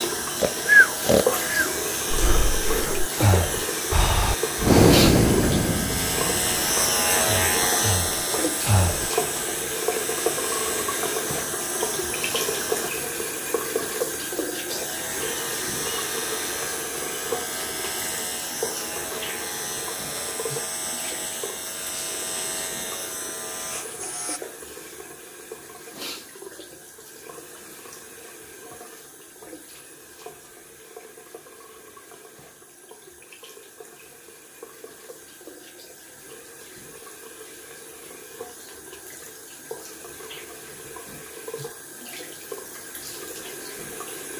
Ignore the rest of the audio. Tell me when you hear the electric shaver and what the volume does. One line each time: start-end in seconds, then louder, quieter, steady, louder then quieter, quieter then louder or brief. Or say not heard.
0.0-12.9 louder then quieter
14.7-24.4 steady.